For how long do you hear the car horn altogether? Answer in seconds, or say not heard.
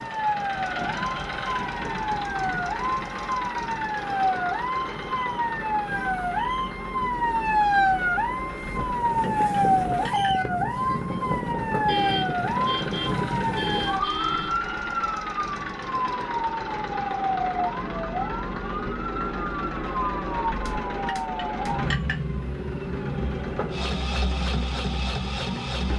3 s.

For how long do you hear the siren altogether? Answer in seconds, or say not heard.
26 s.